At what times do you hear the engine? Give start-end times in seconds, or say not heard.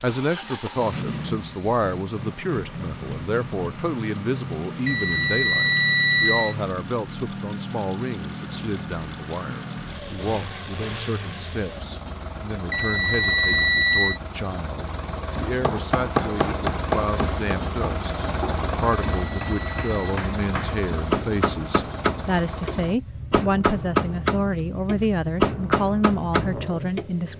0.0-27.3.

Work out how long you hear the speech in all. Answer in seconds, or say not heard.
27 s.